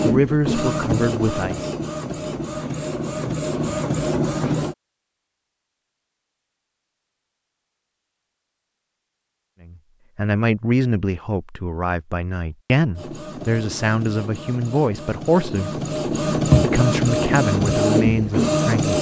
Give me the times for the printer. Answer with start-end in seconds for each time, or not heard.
0.0-4.8, 12.9-18.9.